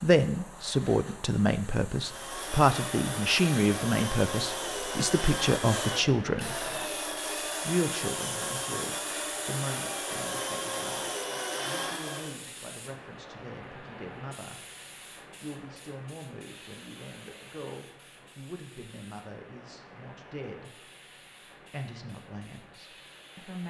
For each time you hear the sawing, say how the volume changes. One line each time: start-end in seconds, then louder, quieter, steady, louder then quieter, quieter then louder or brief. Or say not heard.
1.9-12.4 steady.